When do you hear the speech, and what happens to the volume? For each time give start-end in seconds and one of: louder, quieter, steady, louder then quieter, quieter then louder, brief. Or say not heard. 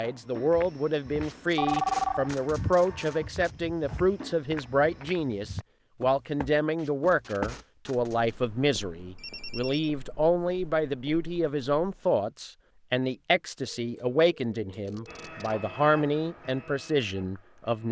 0.0-17.8 steady.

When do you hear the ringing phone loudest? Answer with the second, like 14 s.
2 s.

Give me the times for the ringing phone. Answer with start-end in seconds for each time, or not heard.
1.6-2.3, 9.2-9.9, 13.7-15.3.